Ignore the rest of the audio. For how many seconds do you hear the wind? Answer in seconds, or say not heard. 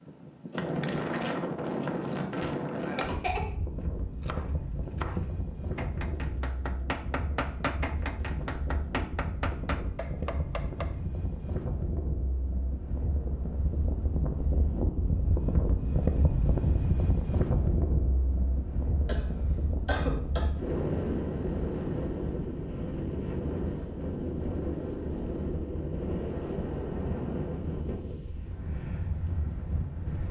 30 s.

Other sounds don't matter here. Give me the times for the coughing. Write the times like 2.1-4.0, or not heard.
3.0-3.5, 19.0-20.6.